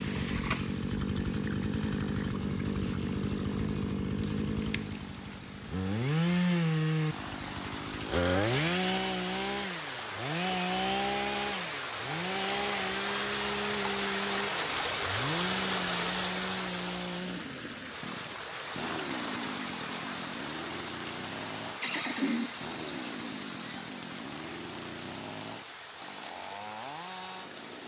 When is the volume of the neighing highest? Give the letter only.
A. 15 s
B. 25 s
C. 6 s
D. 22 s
D.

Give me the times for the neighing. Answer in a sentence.
You can hear the neighing from 21.8 to 23.9 s.